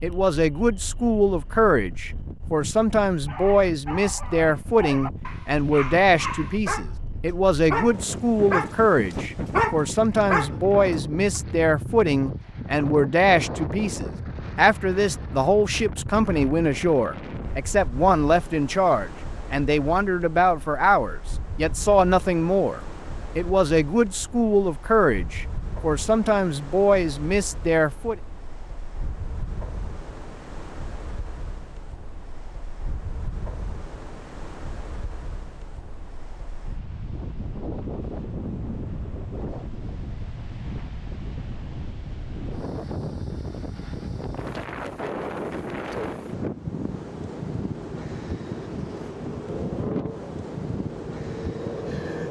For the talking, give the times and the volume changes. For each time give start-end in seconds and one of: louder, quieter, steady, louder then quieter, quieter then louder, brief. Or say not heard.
0.0-28.1 steady.